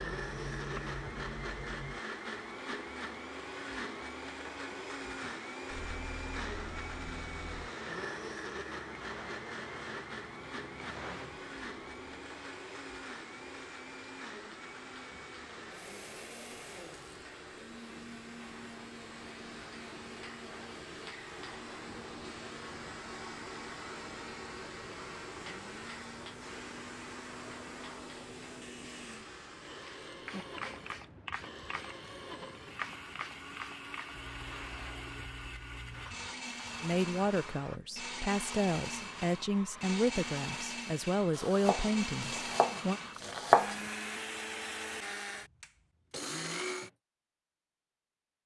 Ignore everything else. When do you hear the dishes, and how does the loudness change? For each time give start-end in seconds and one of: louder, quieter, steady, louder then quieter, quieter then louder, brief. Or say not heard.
not heard.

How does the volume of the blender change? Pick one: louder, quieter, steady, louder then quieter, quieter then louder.
quieter then louder.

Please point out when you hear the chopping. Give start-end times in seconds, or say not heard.
41.4-43.8.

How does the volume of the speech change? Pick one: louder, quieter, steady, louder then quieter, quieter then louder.
steady.